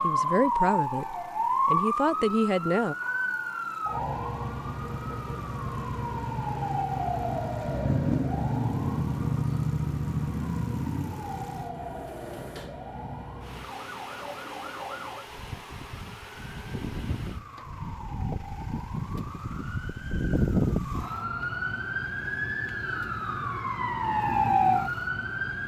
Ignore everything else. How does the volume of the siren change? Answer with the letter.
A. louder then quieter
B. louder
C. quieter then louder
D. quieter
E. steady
C.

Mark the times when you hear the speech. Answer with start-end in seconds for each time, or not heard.
0.0-3.0.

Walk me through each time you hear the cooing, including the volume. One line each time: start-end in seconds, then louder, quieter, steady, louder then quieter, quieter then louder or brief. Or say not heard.
not heard.